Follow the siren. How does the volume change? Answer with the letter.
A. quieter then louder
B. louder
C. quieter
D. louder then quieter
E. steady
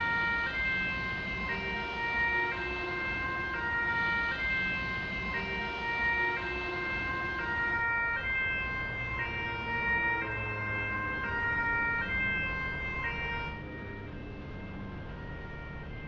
C.